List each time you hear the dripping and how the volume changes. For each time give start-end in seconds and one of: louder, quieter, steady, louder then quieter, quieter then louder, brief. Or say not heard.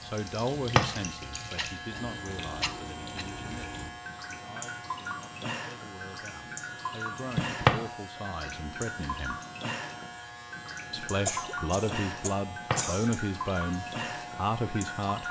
0.0-15.2 steady.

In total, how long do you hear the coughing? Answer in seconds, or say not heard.
5 s.